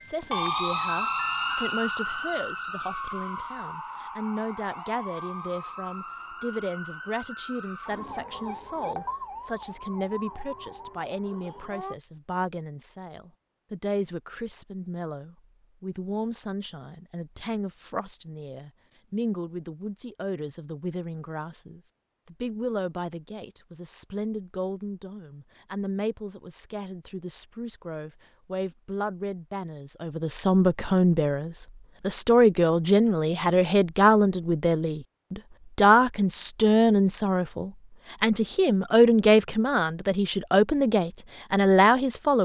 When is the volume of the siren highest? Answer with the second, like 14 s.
1 s.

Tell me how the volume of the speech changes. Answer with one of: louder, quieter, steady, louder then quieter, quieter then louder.
louder.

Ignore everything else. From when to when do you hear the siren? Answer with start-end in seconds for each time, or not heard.
0.0-11.9.